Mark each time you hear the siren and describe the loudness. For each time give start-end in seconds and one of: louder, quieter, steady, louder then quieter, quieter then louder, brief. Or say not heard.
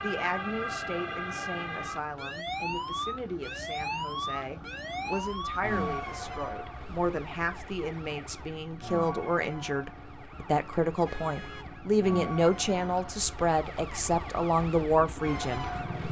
0.0-16.0 quieter.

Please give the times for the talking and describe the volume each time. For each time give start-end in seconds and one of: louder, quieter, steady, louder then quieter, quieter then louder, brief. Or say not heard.
0.0-16.0 louder.